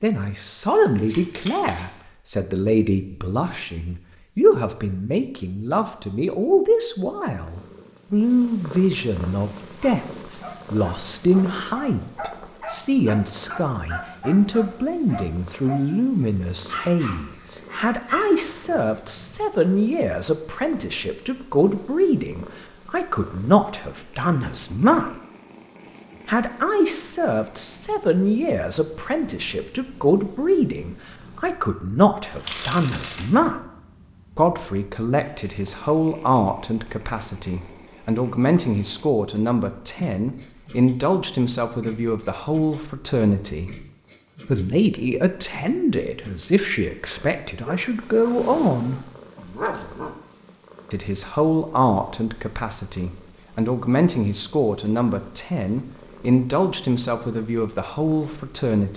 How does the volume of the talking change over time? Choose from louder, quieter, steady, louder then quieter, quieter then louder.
steady.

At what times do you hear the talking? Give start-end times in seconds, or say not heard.
0.0-25.1, 26.2-33.6, 34.4-43.9, 44.5-49.0, 50.9-58.9.